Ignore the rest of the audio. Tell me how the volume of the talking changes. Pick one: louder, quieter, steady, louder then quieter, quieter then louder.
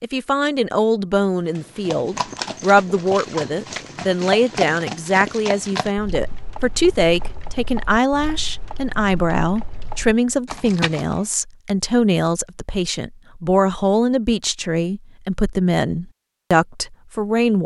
steady.